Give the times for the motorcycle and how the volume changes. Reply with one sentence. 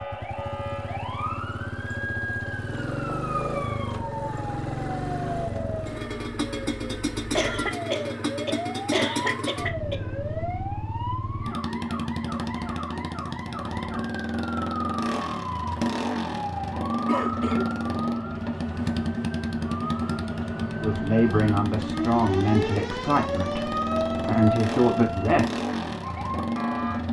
The motorcycle can be heard from 0.0 to 27.0 s, at a steady volume.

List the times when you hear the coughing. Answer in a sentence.
You can hear the coughing from 7.3 to 9.9 s and from 17.1 to 17.8 s.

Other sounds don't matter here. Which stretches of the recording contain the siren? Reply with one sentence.
You can hear the siren from 0.0 to 27.0 s.